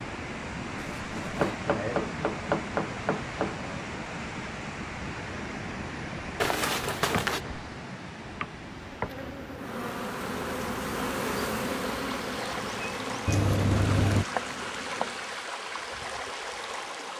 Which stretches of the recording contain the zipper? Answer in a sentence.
You can hear the zipper from 1.0 to 1.6 s, from 6.4 to 7.4 s and from 13.2 to 14.2 s.